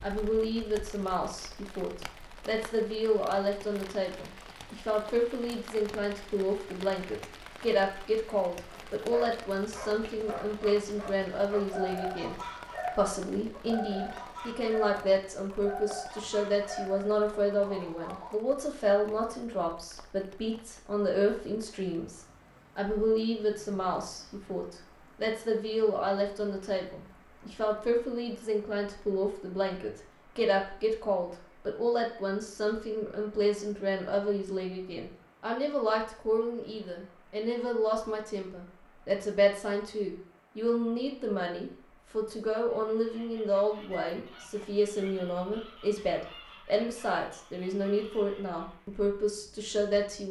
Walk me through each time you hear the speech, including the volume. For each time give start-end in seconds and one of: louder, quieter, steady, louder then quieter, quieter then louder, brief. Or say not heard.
0.0-50.2 steady.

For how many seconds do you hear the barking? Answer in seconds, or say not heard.
10 s.